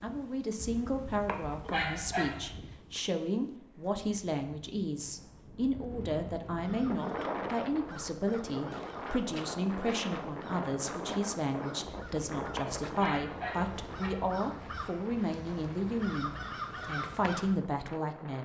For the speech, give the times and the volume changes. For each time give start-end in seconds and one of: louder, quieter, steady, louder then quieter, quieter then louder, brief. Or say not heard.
0.0-18.4 steady.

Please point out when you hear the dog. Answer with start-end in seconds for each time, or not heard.
0.6-2.6, 11.8-14.4.